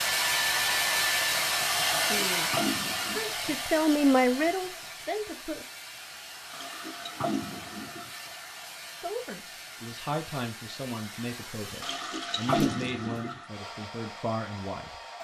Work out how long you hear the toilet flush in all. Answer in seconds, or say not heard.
5 s.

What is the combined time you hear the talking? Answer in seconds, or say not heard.
9 s.